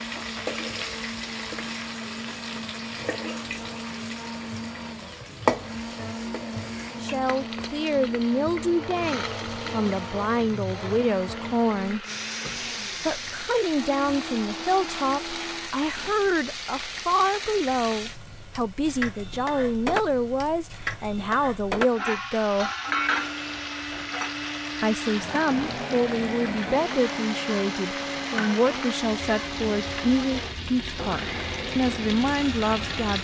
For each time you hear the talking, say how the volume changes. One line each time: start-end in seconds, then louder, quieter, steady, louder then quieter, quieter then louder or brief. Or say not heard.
7.0-12.1 steady
13.1-22.7 steady
24.8-33.1 steady.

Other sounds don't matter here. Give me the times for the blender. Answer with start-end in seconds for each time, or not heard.
0.0-16.1, 22.9-33.1.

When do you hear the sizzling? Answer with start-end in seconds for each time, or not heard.
0.0-33.1.